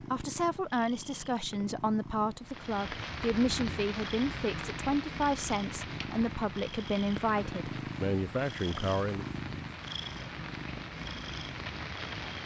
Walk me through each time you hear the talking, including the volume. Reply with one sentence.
The talking can be heard from 0.0 to 9.2 s, at a steady volume.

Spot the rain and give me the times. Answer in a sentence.
You can hear the rain from 2.4 to 12.4 s.